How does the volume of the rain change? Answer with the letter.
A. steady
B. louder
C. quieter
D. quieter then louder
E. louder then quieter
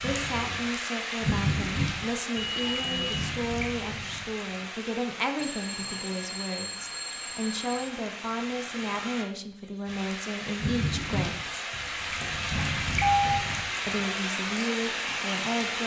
D.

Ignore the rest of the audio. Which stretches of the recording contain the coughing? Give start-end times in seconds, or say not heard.
not heard.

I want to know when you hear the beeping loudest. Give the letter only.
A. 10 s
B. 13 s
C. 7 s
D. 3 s
B.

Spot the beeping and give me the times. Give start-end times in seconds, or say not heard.
2.4-3.3, 5.3-7.9, 12.6-13.4.